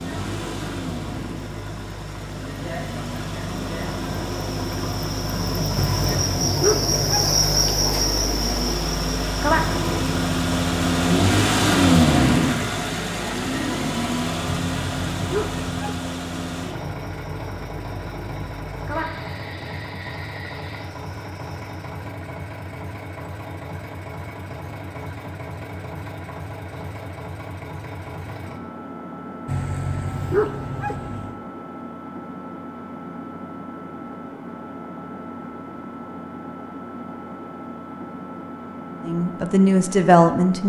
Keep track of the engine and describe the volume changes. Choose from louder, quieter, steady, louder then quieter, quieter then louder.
louder then quieter.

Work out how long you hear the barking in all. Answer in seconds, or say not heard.
5 s.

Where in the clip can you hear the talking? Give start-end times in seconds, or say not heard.
39.0-40.6.